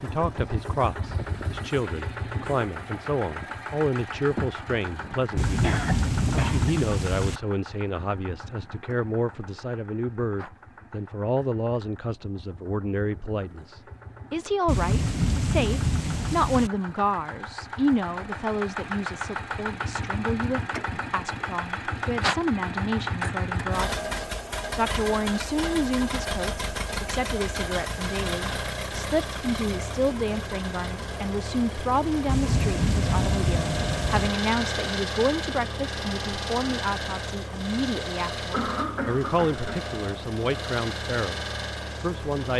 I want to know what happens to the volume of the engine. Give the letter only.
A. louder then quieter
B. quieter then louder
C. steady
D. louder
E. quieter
B.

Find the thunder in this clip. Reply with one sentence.
The thunder can be heard from 5.3 to 7.4 s, from 14.7 to 16.7 s and from 32.2 to 34.3 s.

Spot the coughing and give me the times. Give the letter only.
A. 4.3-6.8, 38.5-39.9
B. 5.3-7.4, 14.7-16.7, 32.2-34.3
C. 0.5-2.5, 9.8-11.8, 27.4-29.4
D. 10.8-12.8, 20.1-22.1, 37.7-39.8
A.